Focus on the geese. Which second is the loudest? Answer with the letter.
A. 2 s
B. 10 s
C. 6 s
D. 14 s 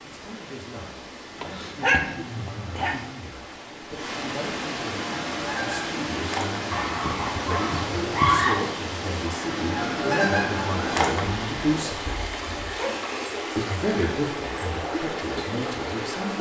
B.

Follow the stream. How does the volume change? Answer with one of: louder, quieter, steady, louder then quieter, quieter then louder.
louder.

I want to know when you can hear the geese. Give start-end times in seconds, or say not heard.
5.0-6.7, 9.5-11.2.